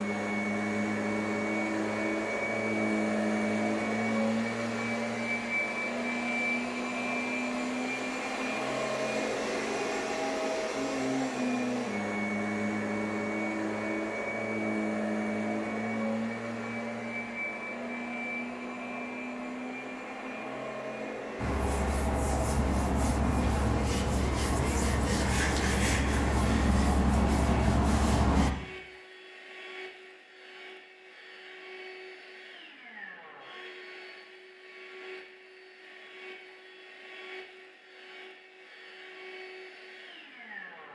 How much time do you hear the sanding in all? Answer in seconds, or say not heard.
7 s.